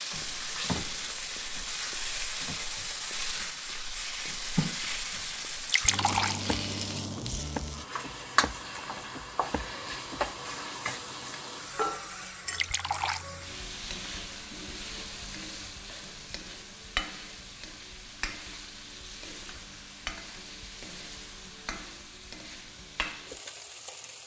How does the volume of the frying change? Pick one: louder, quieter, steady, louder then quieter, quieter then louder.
quieter.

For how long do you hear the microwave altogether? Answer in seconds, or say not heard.
not heard.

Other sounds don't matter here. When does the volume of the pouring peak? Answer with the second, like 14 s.
6 s.